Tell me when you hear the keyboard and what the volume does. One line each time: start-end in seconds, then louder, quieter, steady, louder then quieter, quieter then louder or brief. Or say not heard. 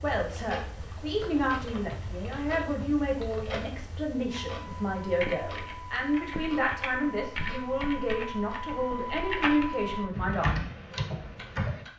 0.0-11.8 louder.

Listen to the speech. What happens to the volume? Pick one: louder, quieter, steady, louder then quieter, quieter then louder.
steady.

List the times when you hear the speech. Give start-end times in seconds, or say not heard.
0.0-10.7.